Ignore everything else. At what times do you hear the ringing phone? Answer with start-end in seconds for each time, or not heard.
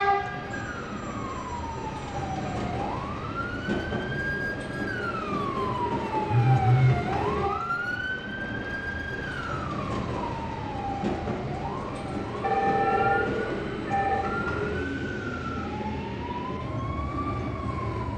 0.5-2.7, 6.2-7.0, 12.4-14.3.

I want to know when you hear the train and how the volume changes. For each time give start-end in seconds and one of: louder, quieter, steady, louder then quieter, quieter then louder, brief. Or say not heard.
0.0-18.1 steady.